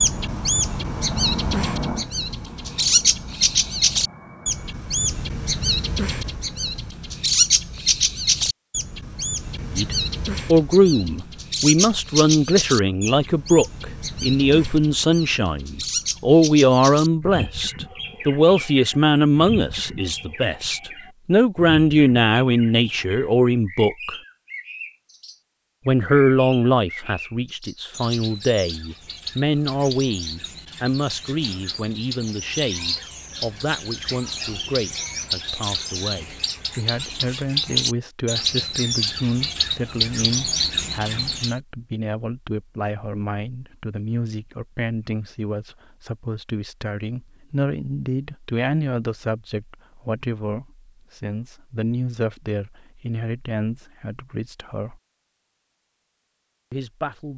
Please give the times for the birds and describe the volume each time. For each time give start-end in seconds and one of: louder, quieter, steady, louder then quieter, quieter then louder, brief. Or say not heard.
0.0-41.5 quieter then louder.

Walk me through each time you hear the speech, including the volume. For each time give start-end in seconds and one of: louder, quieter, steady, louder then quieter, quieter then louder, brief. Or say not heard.
9.7-24.1 steady
25.9-55.0 quieter
56.7-57.3 brief.